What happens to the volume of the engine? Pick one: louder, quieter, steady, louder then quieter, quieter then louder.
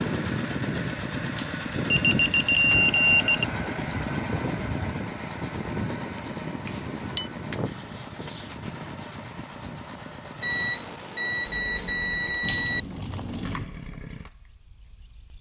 quieter.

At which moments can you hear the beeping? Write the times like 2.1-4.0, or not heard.
1.9-3.5, 6.7-7.3, 10.4-12.8.